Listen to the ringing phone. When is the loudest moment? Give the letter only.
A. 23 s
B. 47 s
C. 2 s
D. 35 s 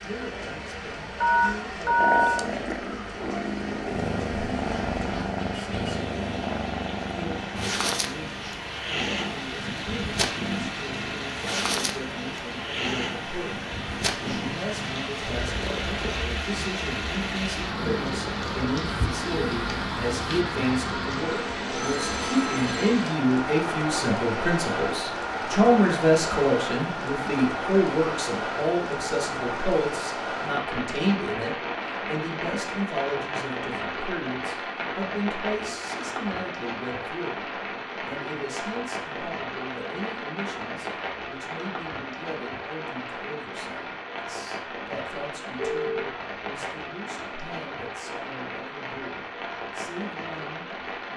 C.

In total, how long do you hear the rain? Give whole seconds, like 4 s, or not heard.
51 s.